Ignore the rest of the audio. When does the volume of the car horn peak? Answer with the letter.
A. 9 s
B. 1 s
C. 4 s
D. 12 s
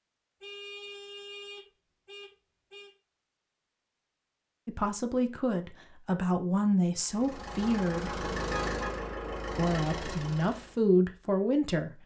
A.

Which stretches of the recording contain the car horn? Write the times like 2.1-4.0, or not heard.
0.4-2.9, 8.5-9.2.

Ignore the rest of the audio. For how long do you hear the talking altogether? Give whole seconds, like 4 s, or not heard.
6 s.